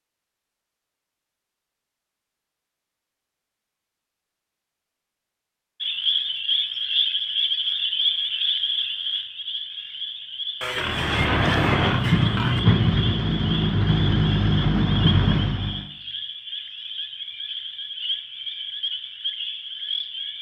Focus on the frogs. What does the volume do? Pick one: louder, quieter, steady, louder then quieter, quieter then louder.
quieter.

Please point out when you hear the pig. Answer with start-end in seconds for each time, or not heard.
10.6-12.6.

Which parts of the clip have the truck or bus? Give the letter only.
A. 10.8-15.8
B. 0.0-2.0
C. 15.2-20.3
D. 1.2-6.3
A.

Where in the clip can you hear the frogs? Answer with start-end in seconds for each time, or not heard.
5.8-20.3.